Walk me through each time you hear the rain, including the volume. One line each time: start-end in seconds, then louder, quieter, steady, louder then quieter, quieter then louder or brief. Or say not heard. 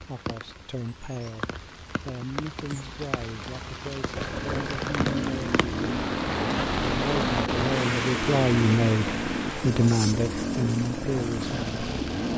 0.0-12.3 louder then quieter.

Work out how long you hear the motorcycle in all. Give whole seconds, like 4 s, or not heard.
8 s.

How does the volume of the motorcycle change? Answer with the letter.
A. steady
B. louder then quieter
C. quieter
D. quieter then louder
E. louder
A.